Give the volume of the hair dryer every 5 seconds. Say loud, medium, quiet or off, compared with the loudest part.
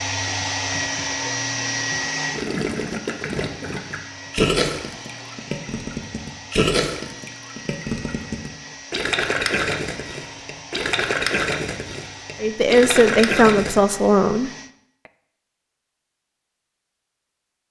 loud, medium, medium, off.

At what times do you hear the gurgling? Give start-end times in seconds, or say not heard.
2.3-13.8.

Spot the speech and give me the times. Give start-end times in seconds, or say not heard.
12.4-14.5.